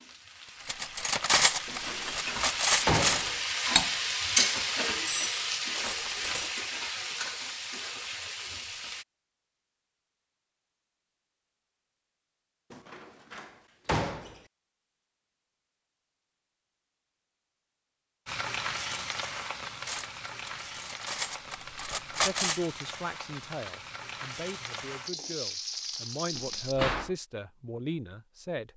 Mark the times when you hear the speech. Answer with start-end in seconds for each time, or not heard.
22.2-28.7.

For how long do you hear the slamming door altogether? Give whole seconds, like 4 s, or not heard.
4 s.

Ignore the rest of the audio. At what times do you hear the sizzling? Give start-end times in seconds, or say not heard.
0.0-9.1, 18.2-26.8.